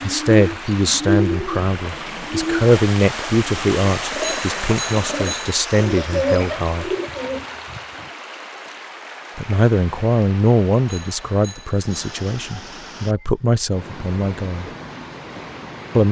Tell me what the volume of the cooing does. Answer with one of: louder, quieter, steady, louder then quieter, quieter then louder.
quieter then louder.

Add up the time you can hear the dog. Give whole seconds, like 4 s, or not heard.
not heard.